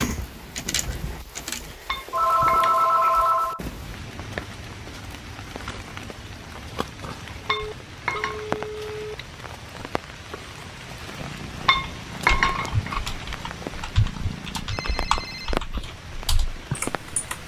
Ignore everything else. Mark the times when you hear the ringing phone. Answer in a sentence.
The ringing phone can be heard from 2.1 to 3.6 s, from 7.5 to 9.2 s and from 14.7 to 15.6 s.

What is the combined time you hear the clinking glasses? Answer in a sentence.
The clinking glasses can be heard for 4 seconds in total.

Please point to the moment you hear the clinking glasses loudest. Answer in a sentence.
The loudest moment of the clinking glasses is at 12 seconds.